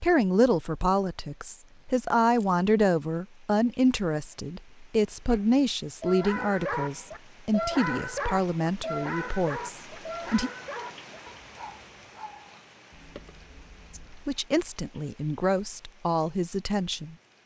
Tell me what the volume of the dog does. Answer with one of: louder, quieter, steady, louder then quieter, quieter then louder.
quieter.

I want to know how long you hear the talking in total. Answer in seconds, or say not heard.
14 s.